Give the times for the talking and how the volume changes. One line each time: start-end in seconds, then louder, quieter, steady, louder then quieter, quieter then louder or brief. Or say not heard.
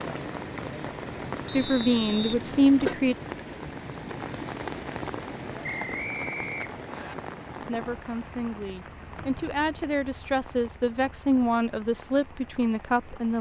1.5-3.1 brief
7.7-13.3 louder.